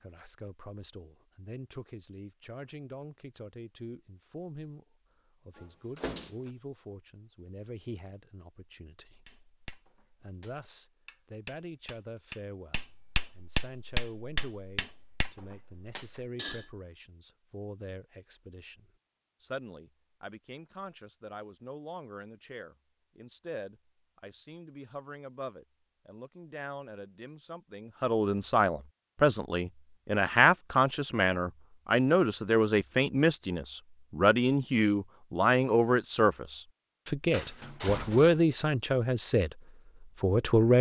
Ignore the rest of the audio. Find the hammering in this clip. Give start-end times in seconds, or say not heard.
9.2-16.6.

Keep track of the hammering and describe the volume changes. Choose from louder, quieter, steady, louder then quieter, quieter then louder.
louder then quieter.